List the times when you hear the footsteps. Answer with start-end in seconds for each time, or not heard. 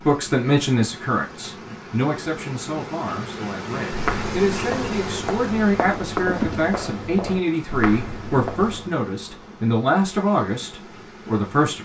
3.9-8.9.